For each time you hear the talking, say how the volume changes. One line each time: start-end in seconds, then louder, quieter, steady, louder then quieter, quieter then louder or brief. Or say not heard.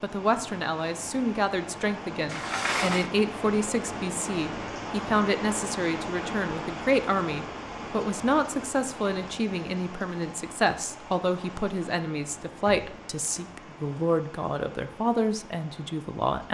0.0-16.4 steady.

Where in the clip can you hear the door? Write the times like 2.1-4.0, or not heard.
2.3-3.1, 12.5-13.4.